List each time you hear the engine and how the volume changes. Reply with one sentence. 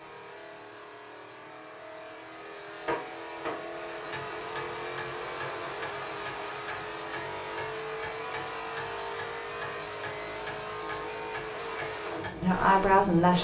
The engine can be heard from 0.0 to 13.3 s, getting louder.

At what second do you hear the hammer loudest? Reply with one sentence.
The volume of the hammer peaks at 3 seconds.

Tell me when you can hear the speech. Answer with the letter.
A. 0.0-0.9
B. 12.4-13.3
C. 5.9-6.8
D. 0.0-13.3
B.